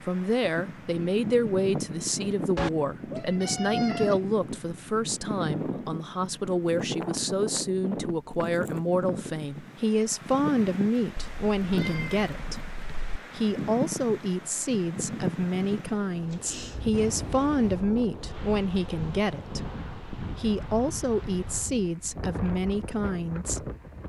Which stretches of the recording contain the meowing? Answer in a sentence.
The meowing can be heard from 2.5 to 4.2 s, from 11.2 to 13.2 s and from 16.3 to 16.9 s.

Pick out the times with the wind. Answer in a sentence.
The wind can be heard from 0.0 to 24.0 s.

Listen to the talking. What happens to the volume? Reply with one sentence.
The loudness of the talking stays about the same.